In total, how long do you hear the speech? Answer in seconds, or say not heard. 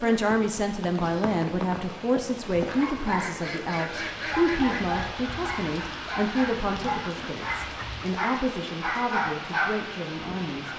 11 s.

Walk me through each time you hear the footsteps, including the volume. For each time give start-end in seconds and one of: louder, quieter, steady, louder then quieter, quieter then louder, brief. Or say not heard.
not heard.